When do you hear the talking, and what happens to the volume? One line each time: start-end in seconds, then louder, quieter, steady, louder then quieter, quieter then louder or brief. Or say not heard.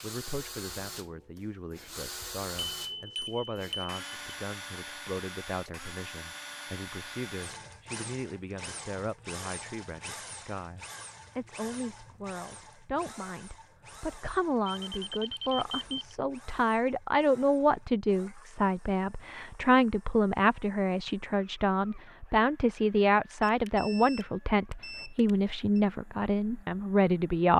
0.0-27.5 louder.